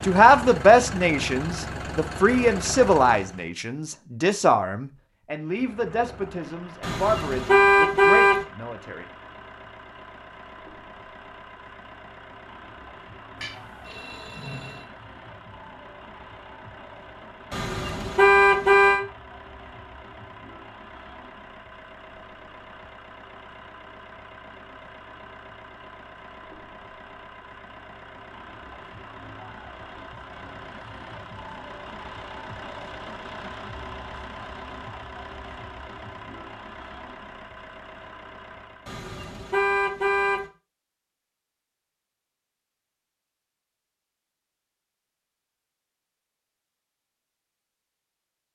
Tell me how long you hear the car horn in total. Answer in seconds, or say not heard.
5 s.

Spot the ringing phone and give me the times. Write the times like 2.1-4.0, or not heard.
13.4-14.8.